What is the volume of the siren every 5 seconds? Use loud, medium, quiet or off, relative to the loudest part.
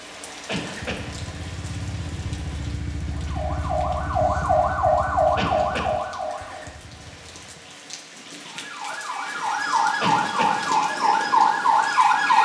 loud, medium, loud.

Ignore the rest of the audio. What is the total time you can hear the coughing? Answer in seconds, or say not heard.
2 s.